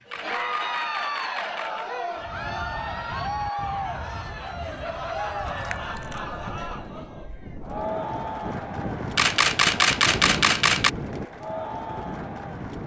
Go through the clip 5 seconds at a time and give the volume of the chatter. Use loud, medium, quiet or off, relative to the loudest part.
loud, loud, medium.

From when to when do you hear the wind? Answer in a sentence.
You can hear the wind from 2.1 to 12.8 s.